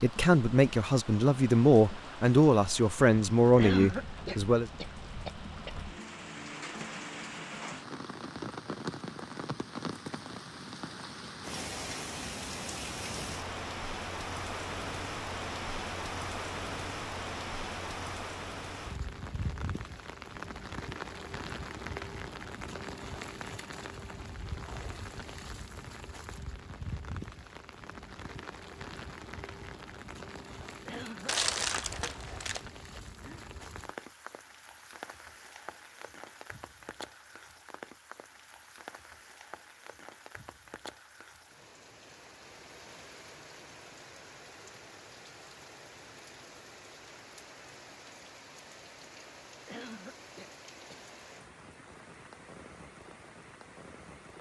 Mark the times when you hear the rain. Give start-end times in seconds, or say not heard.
0.0-54.3.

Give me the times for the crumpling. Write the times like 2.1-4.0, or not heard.
31.2-32.6.